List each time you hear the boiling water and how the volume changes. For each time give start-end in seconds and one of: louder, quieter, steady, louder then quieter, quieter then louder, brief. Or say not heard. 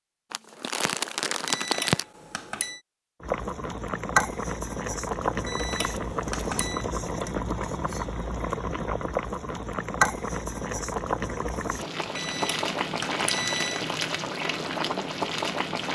3.2-15.9 steady.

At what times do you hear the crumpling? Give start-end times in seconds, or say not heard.
0.3-2.0.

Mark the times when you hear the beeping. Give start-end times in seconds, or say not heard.
1.4-2.8, 5.5-6.8, 12.2-13.8.